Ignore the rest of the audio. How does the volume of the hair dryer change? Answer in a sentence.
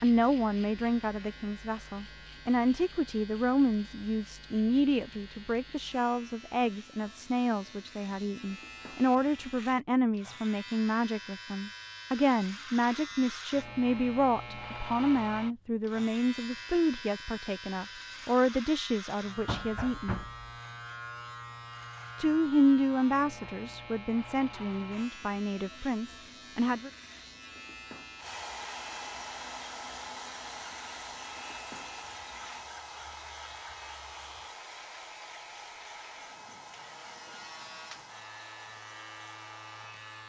The volume of the hair dryer goes down.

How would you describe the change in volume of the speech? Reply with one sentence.
The volume of the speech stays about the same.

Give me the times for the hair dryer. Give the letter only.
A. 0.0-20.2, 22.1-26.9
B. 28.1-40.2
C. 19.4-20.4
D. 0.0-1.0
B.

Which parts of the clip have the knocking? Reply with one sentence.
You can hear the knocking from 19.4 to 20.4 s.